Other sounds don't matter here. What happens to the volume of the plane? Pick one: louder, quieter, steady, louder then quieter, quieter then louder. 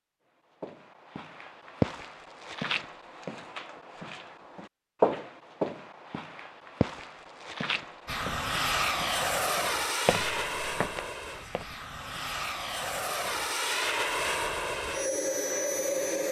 quieter then louder.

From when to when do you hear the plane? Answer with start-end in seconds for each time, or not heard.
8.1-16.2.